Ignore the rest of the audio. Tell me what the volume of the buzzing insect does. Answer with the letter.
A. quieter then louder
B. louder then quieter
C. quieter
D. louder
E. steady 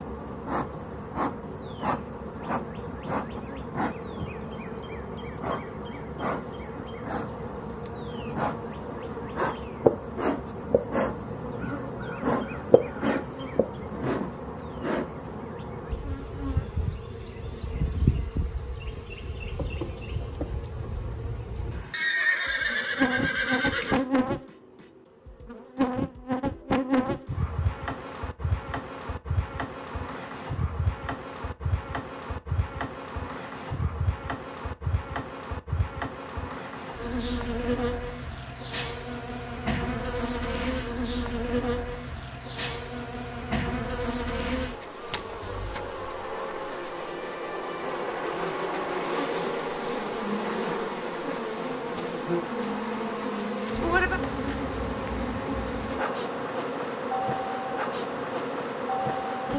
E.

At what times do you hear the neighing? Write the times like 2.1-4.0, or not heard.
21.7-24.1.